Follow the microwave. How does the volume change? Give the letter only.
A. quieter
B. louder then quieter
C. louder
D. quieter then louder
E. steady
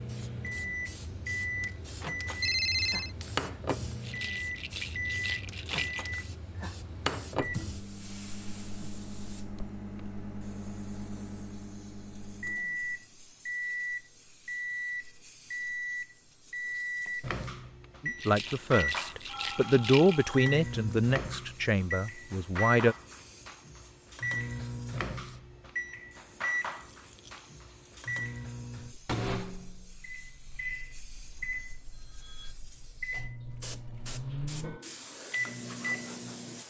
E.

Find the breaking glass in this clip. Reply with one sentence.
The breaking glass can't be heard in this clip.